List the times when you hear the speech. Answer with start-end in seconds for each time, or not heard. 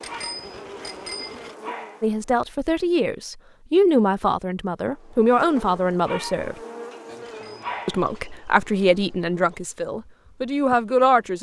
2.0-6.5, 7.8-11.3.